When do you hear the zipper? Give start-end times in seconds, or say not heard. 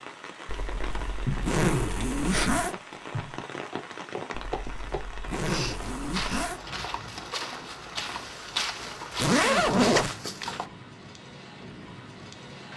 0.5-2.8, 4.3-6.6, 9.2-10.1.